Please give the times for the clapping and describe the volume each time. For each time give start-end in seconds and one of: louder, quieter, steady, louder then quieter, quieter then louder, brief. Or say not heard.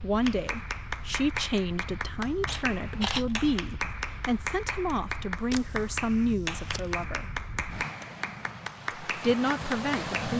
0.2-10.2 steady.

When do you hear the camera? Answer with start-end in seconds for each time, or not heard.
2.5-3.4, 5.5-6.8.